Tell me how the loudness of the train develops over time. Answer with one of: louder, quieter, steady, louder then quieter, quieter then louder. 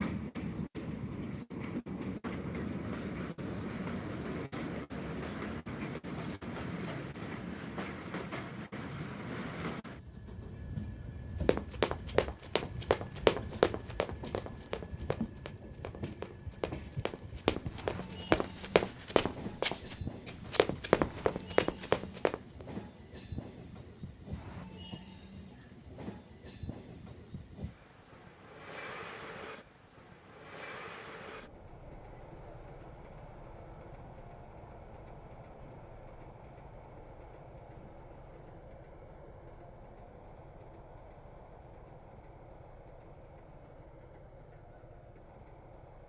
quieter.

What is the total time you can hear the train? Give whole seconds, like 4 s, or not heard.
46 s.